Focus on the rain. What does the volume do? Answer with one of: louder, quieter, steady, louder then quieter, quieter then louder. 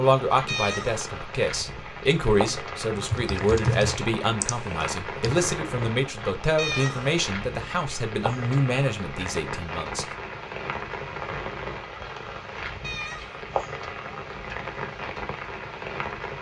steady.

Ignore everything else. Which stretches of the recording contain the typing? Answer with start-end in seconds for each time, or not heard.
2.9-5.5.